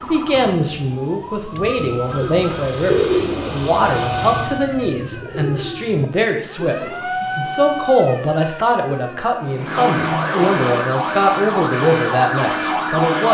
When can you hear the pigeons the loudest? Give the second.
3 s.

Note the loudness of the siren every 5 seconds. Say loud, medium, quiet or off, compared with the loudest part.
medium, medium, loud.